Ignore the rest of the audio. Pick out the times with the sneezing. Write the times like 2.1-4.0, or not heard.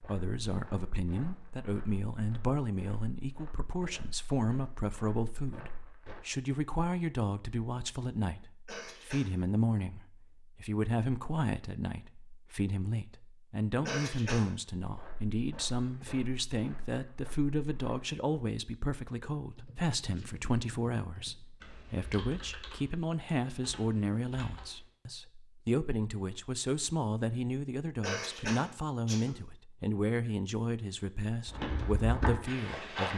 8.7-9.3, 13.8-14.5, 28.0-29.4.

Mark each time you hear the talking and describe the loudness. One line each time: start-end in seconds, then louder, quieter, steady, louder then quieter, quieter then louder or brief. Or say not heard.
0.1-33.1 steady.